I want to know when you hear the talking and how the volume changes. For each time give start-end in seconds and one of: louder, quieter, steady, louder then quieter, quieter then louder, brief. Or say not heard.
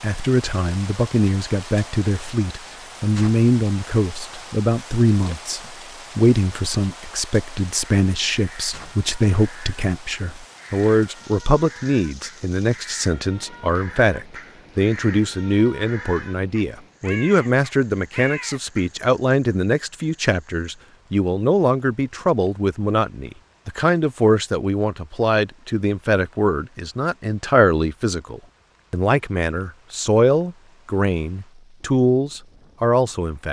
0.0-33.4 steady.